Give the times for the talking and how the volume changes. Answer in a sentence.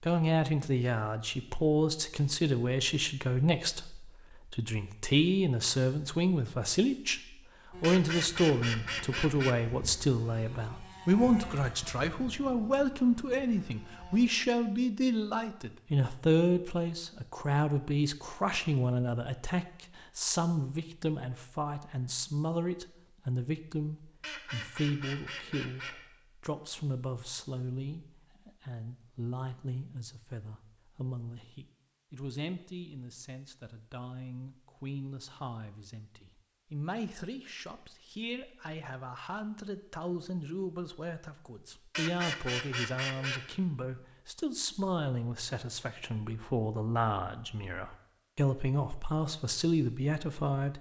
You can hear the talking from 0.0 to 7.2 s, at a steady volume; and from 7.8 to 50.7 s, getting quieter then louder.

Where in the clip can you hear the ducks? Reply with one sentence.
The ducks can be heard from 7.8 to 9.6 s, from 24.2 to 26.0 s and from 41.9 to 43.5 s.